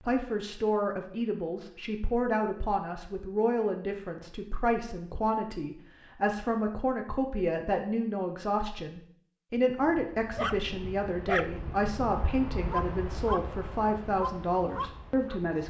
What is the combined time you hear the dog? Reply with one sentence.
You can hear the dog for 6 seconds altogether.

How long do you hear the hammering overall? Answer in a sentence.
You can't hear the hammering here.